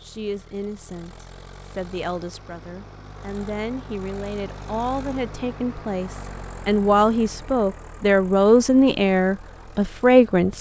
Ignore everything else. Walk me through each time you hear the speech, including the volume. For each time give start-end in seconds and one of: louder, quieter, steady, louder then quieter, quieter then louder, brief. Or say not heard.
0.0-10.5 louder.